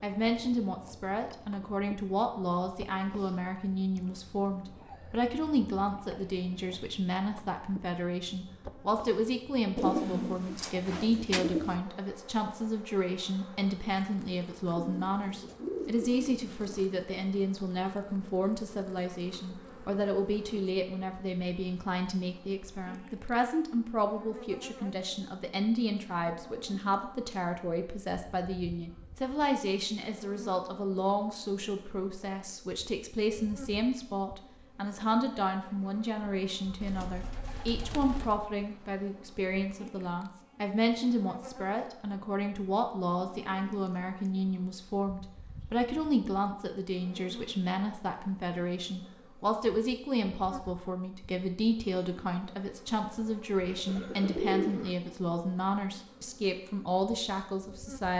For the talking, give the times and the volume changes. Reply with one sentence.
You can hear the talking from 0.0 to 58.1 s, at a steady volume.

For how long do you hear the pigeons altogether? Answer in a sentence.
You can hear the pigeons for 7 seconds altogether.